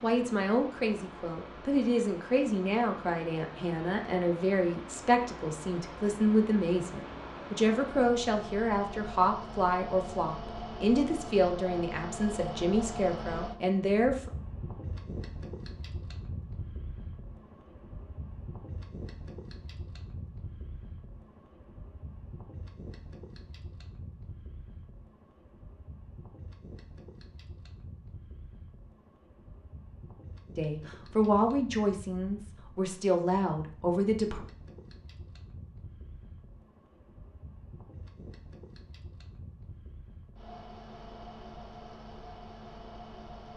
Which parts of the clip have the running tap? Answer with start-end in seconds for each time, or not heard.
not heard.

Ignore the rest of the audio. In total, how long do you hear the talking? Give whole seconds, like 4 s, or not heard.
18 s.